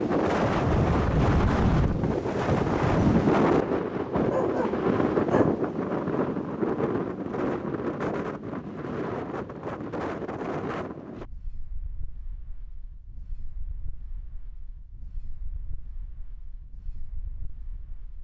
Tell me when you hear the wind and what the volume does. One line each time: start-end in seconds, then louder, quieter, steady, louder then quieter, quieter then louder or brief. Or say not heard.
0.0-18.1 quieter.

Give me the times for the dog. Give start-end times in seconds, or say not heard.
4.1-5.5.